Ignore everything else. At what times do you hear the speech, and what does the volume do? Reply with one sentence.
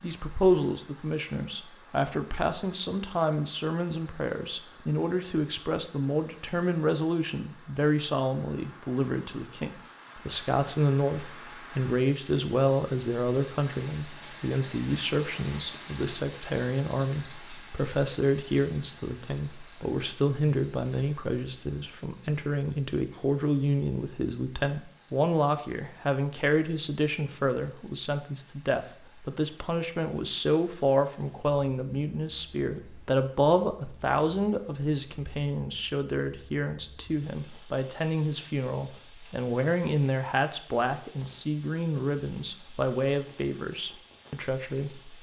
The speech can be heard from 0.0 to 45.1 s, at a steady volume.